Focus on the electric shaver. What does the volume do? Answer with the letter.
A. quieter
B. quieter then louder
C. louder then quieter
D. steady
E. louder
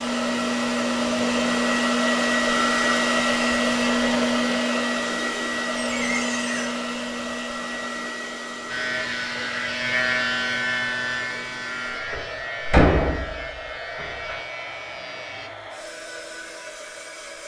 A.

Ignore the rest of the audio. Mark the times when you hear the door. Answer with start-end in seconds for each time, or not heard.
5.8-6.8, 11.9-14.4.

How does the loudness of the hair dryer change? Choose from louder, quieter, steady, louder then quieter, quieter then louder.
quieter.